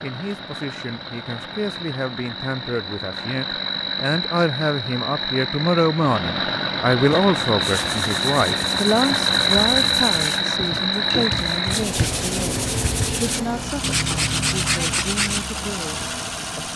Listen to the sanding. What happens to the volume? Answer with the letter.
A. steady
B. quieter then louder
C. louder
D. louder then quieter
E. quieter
C.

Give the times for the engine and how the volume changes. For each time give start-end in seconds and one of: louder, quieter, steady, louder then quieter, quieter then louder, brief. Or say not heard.
0.0-16.7 louder then quieter.